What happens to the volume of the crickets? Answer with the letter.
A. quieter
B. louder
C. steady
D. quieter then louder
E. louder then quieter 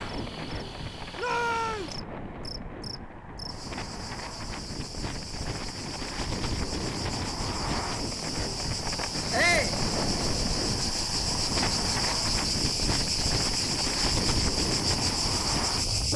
B.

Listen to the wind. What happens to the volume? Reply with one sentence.
The loudness of the wind goes up.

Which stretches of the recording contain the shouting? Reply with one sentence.
The shouting can be heard from 1.1 to 1.9 s and from 9.3 to 9.8 s.